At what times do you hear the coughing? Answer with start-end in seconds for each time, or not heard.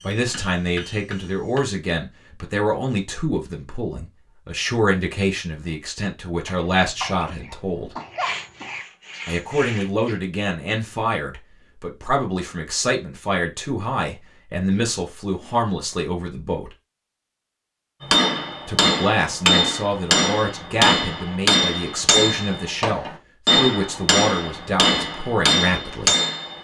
6.5-8.8.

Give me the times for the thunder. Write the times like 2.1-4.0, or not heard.
not heard.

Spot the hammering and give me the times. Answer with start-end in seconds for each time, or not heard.
0.0-1.6, 18.0-26.5.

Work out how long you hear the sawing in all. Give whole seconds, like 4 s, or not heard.
2 s.